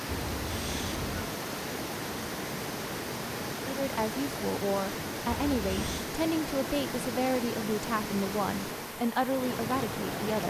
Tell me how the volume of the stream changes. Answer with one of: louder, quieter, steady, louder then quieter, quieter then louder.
steady.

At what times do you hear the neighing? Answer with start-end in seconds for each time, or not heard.
0.1-1.3, 5.2-6.1.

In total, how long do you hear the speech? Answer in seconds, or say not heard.
7 s.